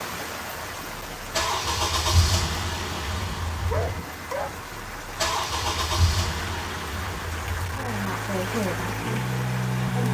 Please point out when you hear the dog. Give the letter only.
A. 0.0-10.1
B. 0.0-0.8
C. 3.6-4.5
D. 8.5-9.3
C.